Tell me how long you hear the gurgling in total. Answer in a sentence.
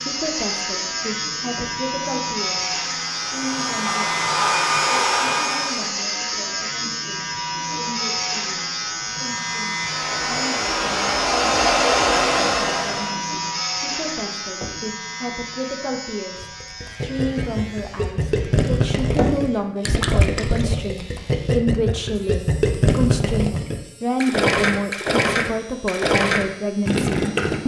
You can hear the gurgling for 11 seconds altogether.